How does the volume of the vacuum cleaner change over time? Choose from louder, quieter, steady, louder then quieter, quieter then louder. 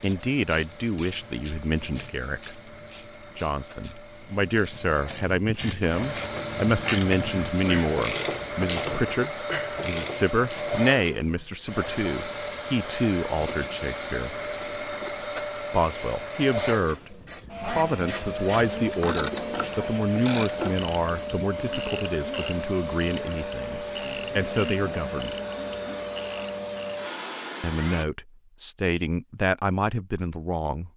louder.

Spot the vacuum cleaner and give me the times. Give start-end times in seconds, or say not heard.
0.0-28.1.